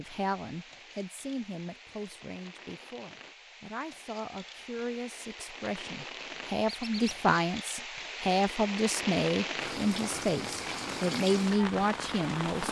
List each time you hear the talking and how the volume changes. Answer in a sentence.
You can hear the talking from 0.0 to 12.6 s, getting louder.